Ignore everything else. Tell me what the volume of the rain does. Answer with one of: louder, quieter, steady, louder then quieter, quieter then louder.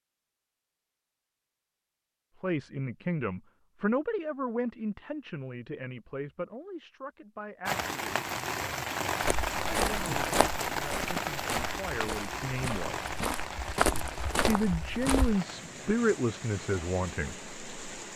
quieter.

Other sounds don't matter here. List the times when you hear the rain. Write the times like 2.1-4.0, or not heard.
7.7-18.1.